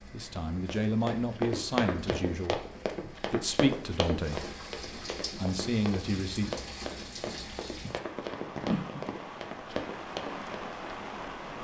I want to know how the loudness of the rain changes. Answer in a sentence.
The loudness of the rain goes up.